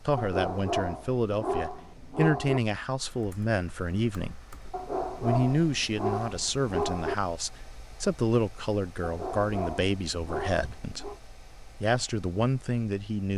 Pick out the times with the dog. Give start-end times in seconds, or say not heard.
0.1-2.6, 4.7-7.2, 9.0-11.2.